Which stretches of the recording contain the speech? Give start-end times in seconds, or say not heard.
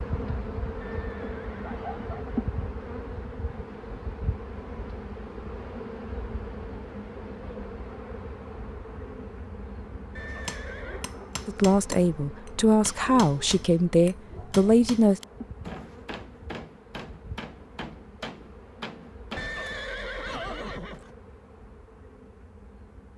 11.4-15.2.